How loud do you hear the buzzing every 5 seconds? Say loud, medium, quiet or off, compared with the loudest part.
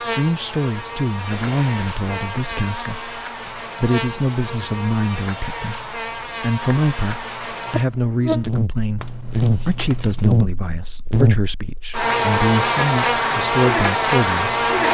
medium, medium, loud.